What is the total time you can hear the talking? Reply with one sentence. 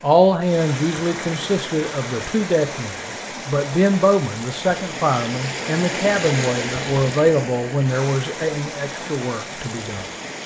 The talking can be heard for 10 seconds in total.